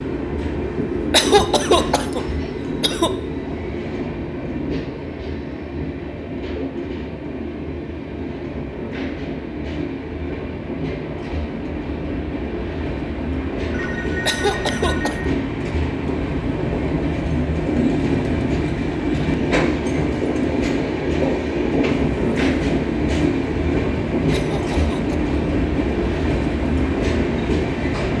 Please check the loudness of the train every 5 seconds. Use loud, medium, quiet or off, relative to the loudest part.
medium, medium, medium, loud, loud, loud.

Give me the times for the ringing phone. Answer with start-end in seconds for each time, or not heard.
13.7-15.2.